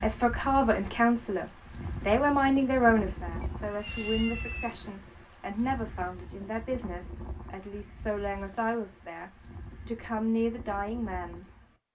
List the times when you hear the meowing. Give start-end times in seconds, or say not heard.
3.4-4.8.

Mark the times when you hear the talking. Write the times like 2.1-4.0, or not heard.
0.0-11.4.